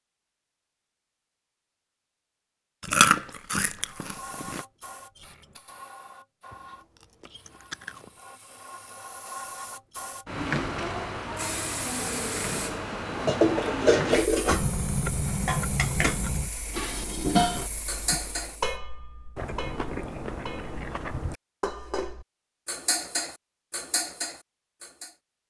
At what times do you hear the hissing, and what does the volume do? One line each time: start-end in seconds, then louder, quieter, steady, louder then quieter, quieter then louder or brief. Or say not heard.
3.8-18.8 louder then quieter.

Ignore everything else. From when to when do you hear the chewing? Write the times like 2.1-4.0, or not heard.
2.8-4.6, 6.5-8.1, 14.4-16.5, 19.4-21.4.